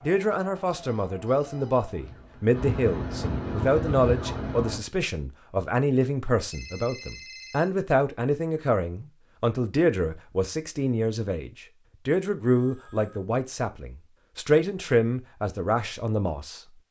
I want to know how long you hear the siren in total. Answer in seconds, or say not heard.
5 s.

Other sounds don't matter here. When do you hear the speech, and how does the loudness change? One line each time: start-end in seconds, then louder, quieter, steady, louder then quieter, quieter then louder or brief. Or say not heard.
0.0-16.6 steady.